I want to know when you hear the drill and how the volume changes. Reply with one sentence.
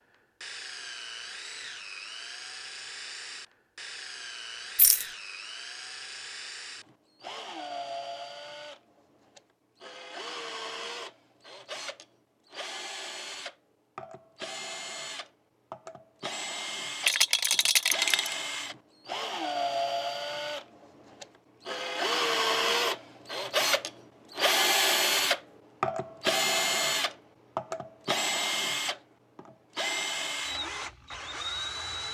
The drill can be heard from 0.1 to 32.1 s, getting louder.